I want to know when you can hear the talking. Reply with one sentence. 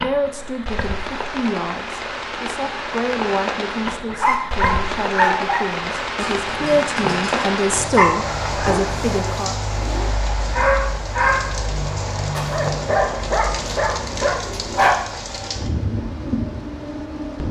The talking can be heard from 0.0 to 9.6 s.